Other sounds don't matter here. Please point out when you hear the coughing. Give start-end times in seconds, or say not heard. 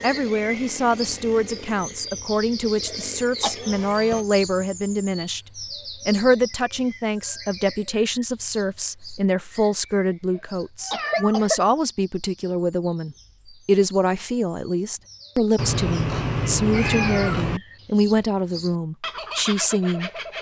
2.9-3.6, 10.3-11.6.